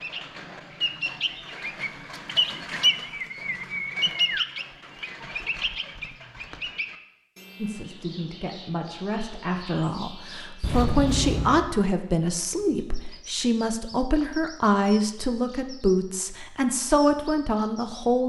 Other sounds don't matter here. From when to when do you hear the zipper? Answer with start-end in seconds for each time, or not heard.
10.6-11.7.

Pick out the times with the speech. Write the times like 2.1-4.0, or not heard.
7.5-18.2.